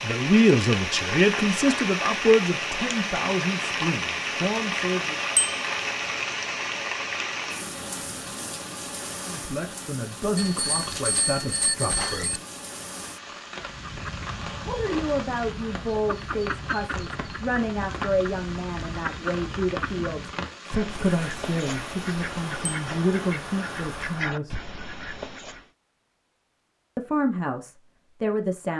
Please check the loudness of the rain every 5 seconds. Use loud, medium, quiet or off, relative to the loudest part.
loud, loud, medium, medium, medium, off.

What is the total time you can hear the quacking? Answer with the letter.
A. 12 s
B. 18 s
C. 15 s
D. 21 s
A.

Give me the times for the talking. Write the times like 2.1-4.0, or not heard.
0.0-5.2, 9.3-12.4, 14.7-24.6, 26.9-28.7.